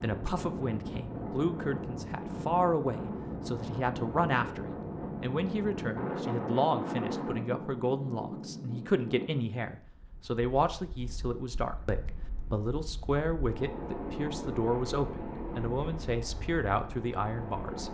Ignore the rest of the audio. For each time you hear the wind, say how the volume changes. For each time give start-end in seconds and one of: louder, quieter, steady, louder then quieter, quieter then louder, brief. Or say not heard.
0.0-17.8 quieter then louder.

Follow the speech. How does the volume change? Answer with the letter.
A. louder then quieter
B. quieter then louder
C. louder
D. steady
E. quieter
D.